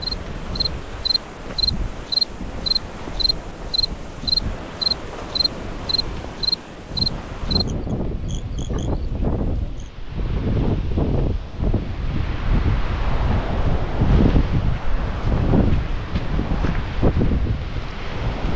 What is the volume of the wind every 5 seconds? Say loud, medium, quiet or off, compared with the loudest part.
medium, medium, loud, loud.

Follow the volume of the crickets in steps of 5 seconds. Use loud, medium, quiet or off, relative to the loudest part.
loud, medium, off, off.